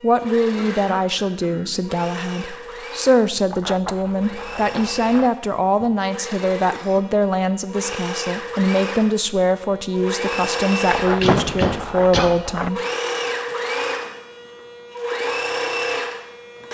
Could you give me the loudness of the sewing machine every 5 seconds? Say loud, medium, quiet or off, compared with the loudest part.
medium, medium, loud, loud.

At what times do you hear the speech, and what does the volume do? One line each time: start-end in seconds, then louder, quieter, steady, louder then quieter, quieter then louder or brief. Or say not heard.
0.0-12.8 steady.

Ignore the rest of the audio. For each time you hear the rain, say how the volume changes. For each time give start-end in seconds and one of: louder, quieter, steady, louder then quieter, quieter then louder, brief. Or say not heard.
not heard.